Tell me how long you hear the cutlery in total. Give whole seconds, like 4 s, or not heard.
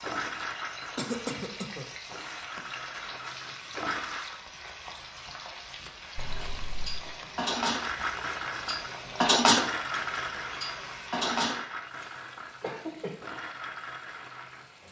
6 s.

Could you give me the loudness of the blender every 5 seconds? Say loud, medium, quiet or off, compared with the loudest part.
loud, loud, medium.